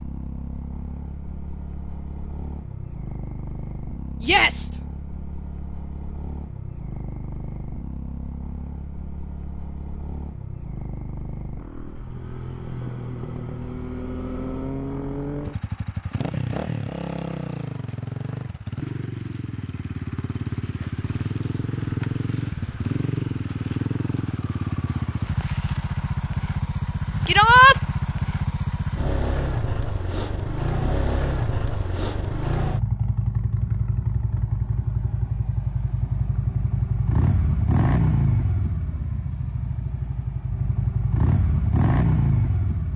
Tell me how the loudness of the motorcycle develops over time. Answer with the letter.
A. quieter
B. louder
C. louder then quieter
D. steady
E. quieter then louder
B.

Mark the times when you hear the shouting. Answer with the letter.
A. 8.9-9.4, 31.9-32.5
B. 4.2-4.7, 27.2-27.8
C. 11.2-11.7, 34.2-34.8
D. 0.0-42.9
B.